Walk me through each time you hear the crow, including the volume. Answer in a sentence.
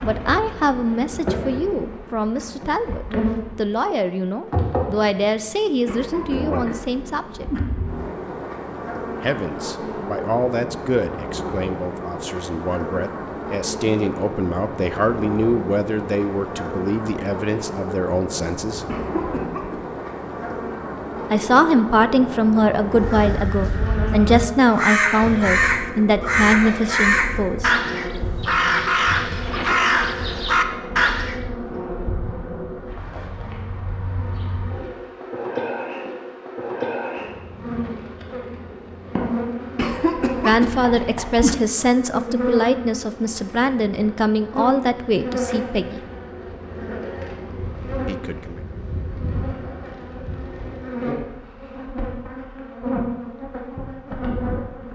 You can hear the crow from 22.9 to 31.4 s, getting louder.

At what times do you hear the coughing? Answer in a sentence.
You can hear the coughing from 5.8 to 7.6 s, from 18.9 to 19.9 s and from 39.8 to 41.5 s.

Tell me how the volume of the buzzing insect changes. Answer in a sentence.
The volume of the buzzing insect stays about the same.